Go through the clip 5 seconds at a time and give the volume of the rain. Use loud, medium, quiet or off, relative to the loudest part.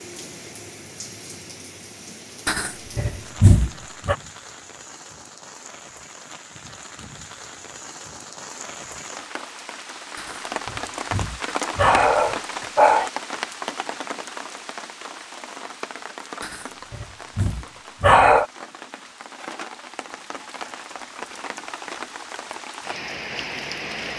medium, medium, loud, medium, loud.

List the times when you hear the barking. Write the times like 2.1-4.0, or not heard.
2.5-4.2, 10.2-13.1, 16.4-18.4.